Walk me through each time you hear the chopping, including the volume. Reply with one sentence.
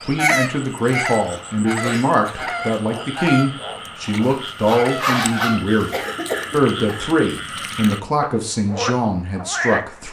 The chopping can't be heard in this clip.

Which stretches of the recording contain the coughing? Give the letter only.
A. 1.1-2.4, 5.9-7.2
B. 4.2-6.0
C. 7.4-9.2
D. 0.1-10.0
A.